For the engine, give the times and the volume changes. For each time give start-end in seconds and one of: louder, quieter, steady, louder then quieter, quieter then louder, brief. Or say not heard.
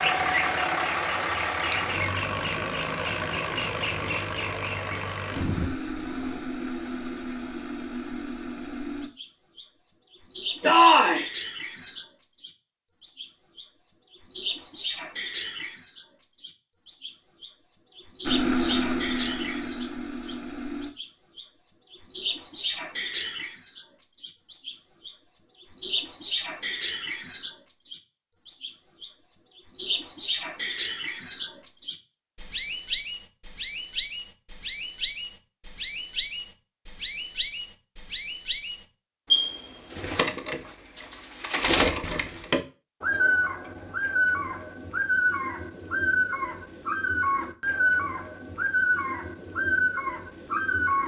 0.0-9.1 quieter
18.2-20.9 brief.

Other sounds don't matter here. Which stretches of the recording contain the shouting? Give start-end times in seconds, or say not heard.
10.6-11.2.